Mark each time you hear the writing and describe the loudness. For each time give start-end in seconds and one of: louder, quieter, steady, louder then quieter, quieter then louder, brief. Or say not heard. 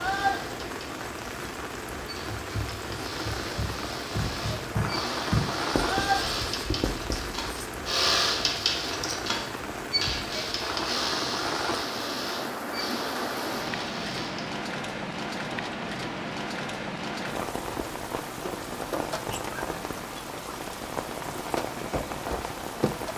2.4-7.7 louder then quieter.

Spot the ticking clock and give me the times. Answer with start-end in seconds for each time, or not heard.
not heard.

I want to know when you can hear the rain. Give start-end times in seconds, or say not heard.
0.0-23.1.